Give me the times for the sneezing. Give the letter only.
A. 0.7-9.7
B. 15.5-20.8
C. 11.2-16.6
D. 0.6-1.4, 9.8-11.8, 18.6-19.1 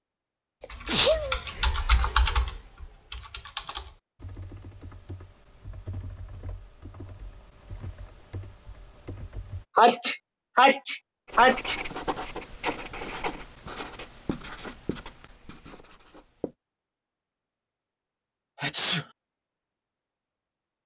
D.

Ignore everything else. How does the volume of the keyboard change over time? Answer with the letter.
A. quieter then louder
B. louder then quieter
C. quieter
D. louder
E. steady
C.